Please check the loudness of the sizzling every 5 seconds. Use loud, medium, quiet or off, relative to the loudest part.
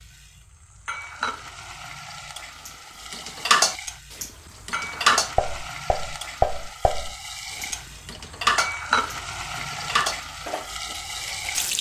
medium, loud, loud.